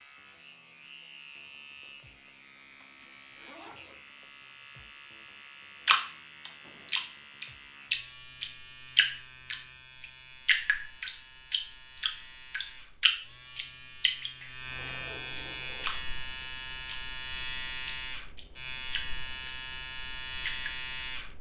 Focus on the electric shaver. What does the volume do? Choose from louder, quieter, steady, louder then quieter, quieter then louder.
louder.